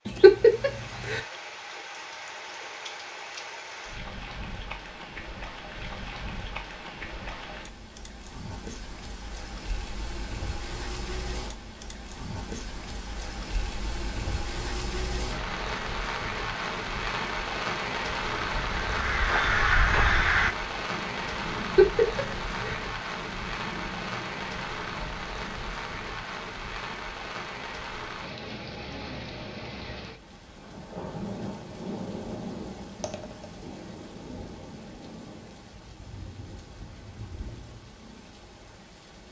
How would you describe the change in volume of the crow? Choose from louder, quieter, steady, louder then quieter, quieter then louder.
quieter.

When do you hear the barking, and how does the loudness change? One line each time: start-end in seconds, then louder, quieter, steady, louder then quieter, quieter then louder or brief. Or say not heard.
not heard.